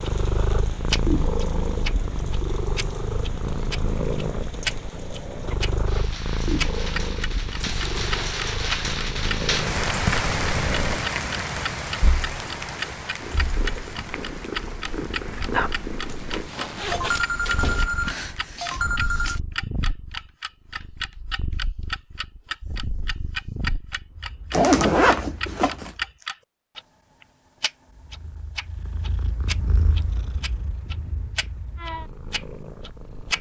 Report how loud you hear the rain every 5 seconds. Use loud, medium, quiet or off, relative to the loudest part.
quiet, loud, loud, quiet, off, off, off.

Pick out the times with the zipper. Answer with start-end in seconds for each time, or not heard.
7.6-8.3, 16.1-17.9, 24.5-25.9.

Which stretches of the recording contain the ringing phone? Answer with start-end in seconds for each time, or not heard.
16.9-19.4.